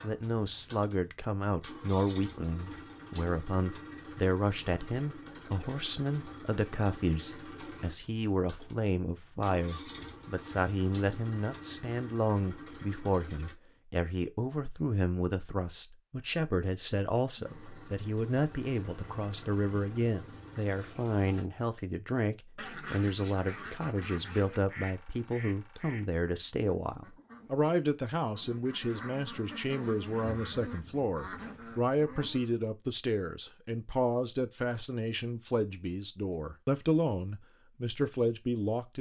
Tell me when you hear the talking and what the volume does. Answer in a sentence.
The talking can be heard from 0.0 to 38.9 s, at a steady volume.